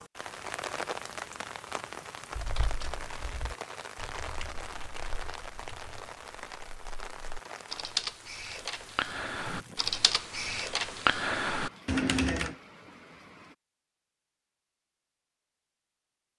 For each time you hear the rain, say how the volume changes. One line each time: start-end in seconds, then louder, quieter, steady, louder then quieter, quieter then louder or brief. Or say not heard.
0.0-13.6 quieter.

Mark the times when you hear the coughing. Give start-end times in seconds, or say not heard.
not heard.